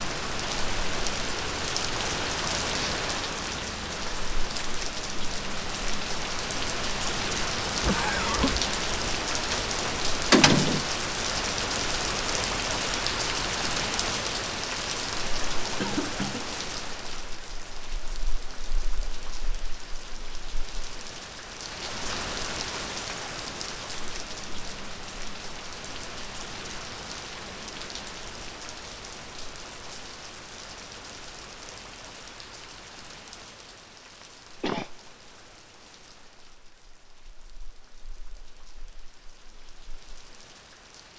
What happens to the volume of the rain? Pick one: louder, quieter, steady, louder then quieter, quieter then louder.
quieter.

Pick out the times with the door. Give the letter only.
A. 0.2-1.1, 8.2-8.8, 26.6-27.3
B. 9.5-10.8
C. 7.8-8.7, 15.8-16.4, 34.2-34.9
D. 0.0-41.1
B.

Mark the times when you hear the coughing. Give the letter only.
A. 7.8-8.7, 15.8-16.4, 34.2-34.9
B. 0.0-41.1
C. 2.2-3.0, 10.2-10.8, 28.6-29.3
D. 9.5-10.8
A.